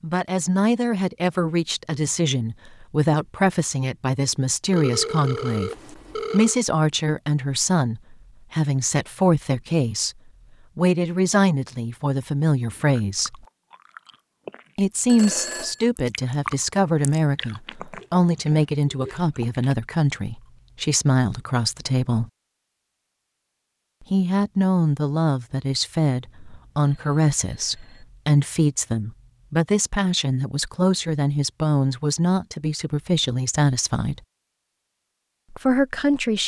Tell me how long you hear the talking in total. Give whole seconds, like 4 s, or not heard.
31 s.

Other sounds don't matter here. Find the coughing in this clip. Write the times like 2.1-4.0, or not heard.
not heard.